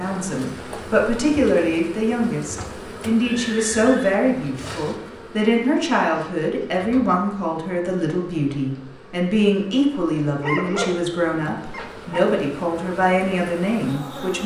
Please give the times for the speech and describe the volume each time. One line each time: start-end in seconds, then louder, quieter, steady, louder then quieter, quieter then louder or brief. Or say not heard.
0.0-14.4 steady.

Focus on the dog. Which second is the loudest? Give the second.
11 s.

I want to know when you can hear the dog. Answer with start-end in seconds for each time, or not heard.
10.4-12.2.